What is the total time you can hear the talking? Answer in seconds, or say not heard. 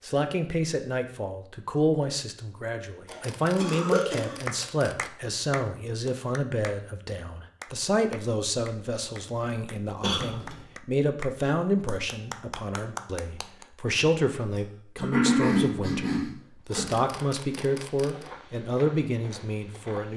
20 s.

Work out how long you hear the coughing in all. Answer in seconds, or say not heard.
4 s.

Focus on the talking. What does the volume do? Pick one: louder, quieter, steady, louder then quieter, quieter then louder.
steady.